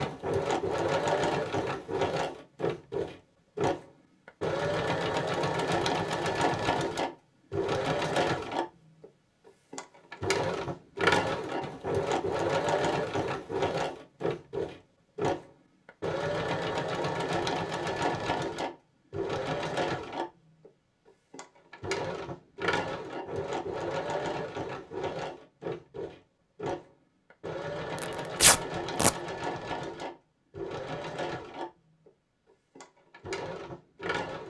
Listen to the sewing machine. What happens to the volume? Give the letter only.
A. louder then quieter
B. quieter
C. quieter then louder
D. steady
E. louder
B.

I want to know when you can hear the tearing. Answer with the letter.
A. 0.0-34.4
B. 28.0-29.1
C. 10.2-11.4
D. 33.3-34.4
B.